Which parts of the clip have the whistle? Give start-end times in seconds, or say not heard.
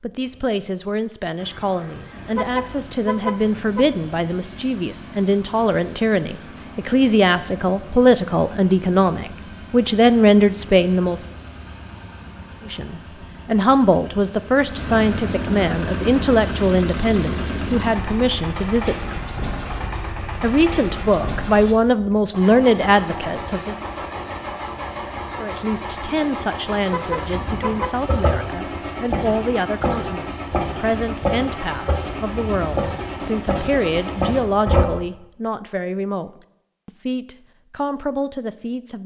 not heard.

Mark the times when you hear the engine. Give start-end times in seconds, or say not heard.
0.1-34.9.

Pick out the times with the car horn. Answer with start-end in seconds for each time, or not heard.
2.4-3.9, 26.9-27.9.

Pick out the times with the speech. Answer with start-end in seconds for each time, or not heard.
0.0-11.2, 12.7-19.2, 20.4-23.8, 25.4-39.0.